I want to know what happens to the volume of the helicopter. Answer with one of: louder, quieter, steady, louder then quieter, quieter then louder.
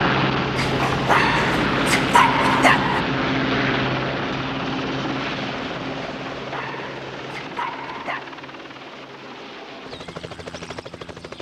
quieter.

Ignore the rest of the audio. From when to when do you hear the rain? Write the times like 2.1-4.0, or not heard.
not heard.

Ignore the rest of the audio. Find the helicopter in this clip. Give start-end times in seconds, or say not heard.
0.0-11.3.